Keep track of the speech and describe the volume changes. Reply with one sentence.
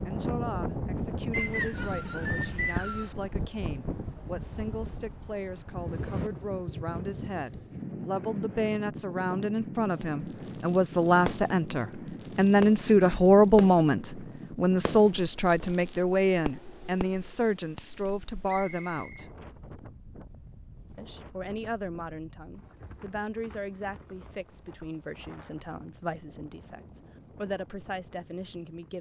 The loudness of the speech goes up, then down.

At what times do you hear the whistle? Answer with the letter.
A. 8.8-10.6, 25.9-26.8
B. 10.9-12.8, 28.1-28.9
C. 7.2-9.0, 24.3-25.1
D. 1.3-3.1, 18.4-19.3
D.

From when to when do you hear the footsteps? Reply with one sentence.
The footsteps can't be heard in this clip.